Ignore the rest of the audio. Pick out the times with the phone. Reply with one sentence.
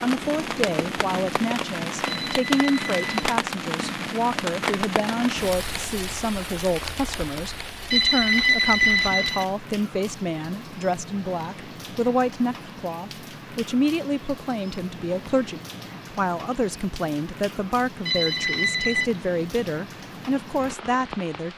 You can hear the phone from 2.0 to 3.2 s, from 7.9 to 9.4 s and from 18.1 to 19.1 s.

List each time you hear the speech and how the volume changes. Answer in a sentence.
The speech can be heard from 0.0 to 21.5 s, at a steady volume.